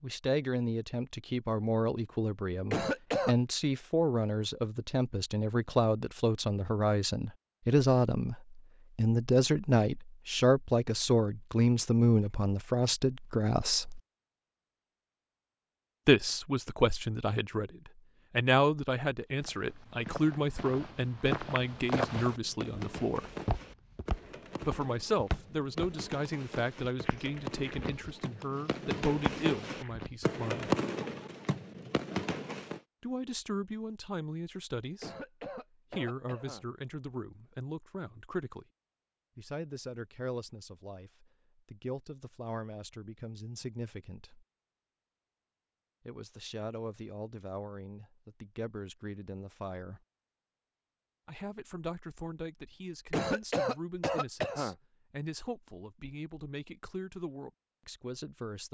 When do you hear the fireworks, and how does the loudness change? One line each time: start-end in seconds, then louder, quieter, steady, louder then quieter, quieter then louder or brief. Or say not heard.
22.2-32.8 louder.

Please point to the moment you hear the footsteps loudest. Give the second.
22 s.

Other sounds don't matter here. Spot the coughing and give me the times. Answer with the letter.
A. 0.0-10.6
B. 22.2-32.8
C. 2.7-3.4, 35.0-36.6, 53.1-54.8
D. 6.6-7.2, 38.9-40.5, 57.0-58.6
C.